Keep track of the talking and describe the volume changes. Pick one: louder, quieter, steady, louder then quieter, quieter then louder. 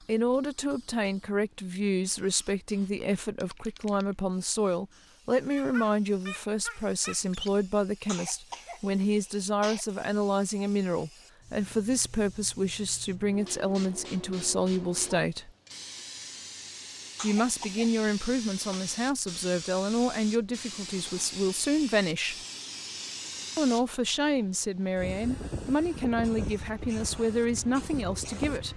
steady.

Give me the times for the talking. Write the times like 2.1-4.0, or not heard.
0.1-15.5, 17.2-22.4, 23.6-28.7.